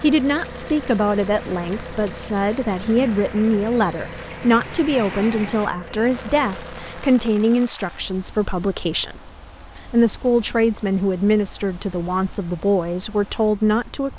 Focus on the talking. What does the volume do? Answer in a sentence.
The volume of the talking stays about the same.